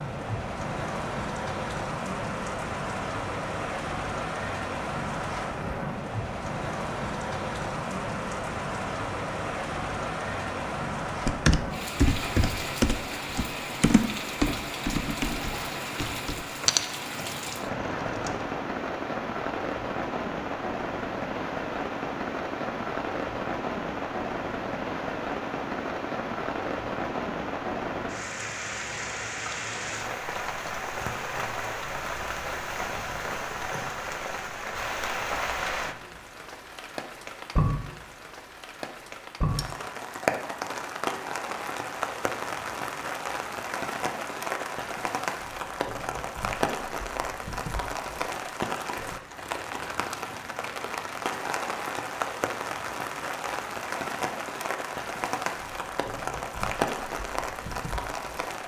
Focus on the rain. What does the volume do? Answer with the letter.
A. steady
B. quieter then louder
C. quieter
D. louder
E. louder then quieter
A.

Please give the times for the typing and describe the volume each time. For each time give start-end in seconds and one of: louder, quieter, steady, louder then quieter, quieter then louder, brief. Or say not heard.
11.2-18.6 quieter.